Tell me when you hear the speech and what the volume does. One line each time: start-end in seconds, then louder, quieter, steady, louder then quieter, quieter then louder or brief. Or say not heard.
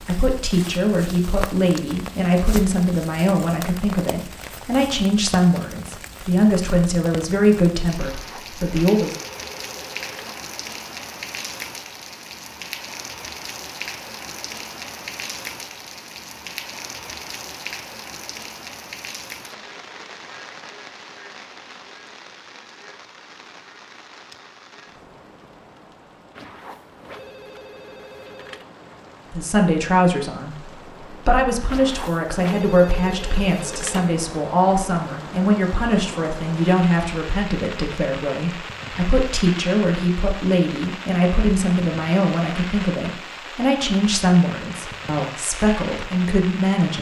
0.0-9.1 steady
29.3-46.9 steady.